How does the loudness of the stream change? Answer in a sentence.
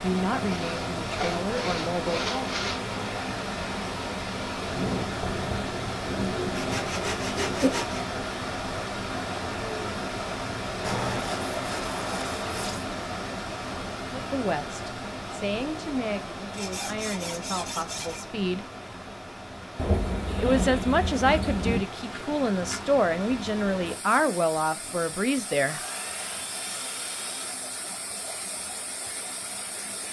The loudness of the stream goes down.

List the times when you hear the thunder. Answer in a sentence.
The thunder can be heard from 4.5 to 7.7 s and from 19.8 to 21.8 s.